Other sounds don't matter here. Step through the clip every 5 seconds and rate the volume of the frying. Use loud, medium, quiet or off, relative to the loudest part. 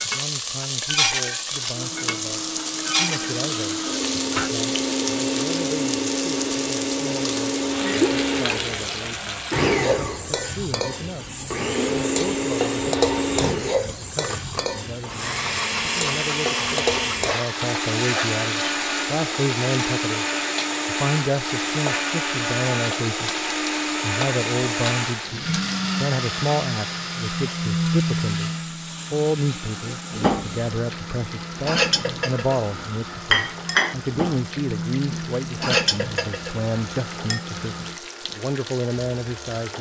loud, loud, loud, loud, medium, medium, quiet, medium.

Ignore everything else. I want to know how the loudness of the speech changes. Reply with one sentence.
The volume of the speech goes up.